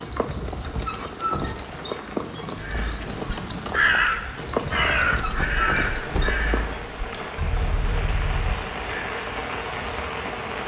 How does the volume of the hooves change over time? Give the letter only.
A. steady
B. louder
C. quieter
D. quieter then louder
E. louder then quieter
A.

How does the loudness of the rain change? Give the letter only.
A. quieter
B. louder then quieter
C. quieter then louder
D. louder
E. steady
D.